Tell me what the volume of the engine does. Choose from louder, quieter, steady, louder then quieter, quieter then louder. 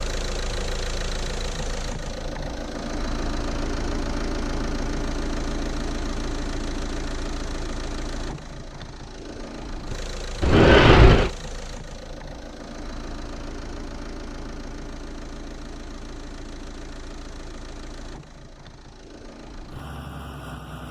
quieter.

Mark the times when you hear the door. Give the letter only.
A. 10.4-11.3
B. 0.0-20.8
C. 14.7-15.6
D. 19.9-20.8
A.